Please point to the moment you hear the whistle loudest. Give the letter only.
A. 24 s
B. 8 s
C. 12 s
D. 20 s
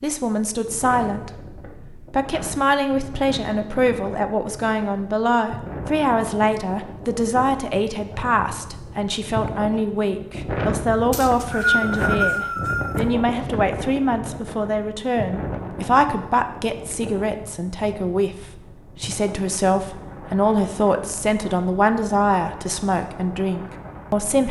C.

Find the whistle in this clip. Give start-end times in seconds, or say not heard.
11.1-13.0.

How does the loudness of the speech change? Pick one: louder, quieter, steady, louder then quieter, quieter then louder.
steady.